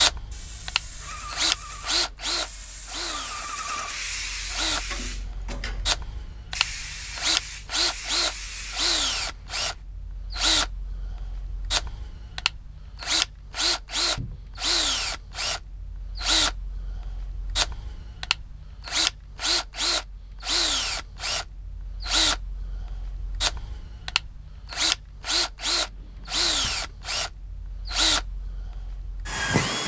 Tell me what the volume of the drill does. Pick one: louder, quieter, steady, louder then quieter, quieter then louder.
steady.